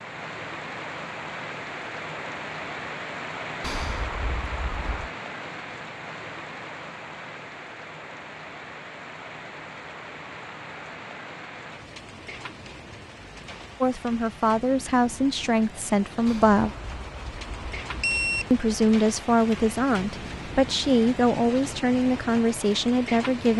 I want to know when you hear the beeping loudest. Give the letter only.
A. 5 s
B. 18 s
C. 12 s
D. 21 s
B.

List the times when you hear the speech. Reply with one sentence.
You can hear the speech from 13.8 to 16.7 s and from 18.5 to 23.5 s.